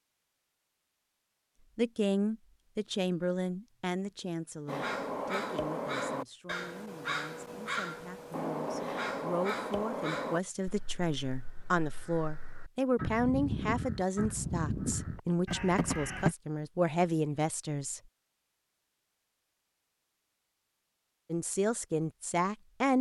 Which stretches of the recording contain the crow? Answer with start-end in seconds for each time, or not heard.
4.7-16.4.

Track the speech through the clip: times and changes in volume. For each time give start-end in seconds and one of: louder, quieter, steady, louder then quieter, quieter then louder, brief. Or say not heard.
1.8-18.0 quieter then louder
21.3-22.9 brief.